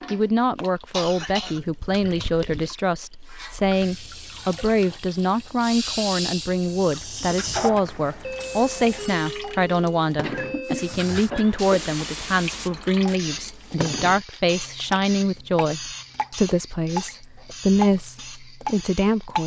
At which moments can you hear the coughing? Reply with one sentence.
The coughing can be heard from 0.9 to 2.8 s and from 10.2 to 12.2 s.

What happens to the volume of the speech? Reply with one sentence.
The volume of the speech stays about the same.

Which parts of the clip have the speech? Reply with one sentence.
The speech can be heard from 0.1 to 19.4 s.